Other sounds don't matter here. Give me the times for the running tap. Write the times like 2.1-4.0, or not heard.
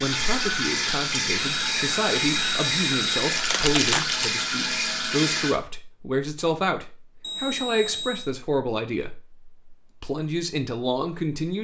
0.0-5.5.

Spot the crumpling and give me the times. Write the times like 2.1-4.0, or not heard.
3.3-4.2.